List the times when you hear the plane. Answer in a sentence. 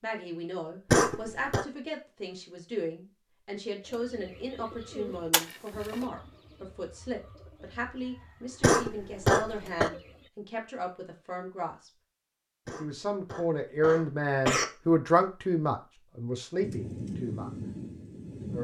You can hear the plane from 16.6 to 18.5 s.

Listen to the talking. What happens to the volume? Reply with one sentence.
The loudness of the talking goes up.